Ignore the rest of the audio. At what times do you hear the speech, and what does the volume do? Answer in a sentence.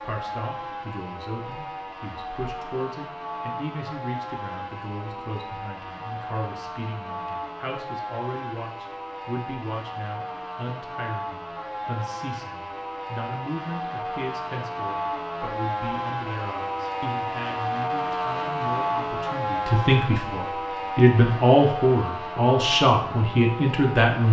You can hear the speech from 0.0 to 24.2 s, getting louder.